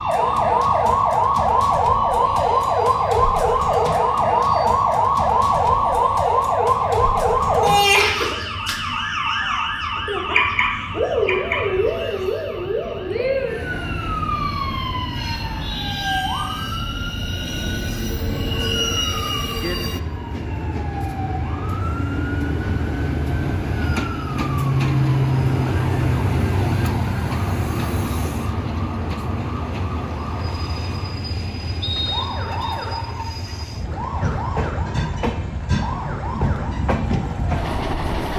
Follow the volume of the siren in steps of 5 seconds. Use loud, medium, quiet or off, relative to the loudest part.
loud, loud, medium, quiet, quiet, quiet, quiet, quiet.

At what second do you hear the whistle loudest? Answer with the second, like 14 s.
32 s.